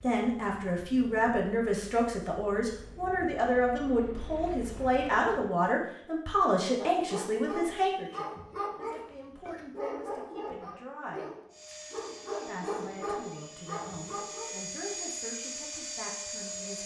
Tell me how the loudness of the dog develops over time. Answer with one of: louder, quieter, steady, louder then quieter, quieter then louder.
steady.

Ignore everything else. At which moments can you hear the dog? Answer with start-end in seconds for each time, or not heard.
6.8-14.8.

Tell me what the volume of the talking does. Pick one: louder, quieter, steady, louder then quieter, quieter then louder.
quieter.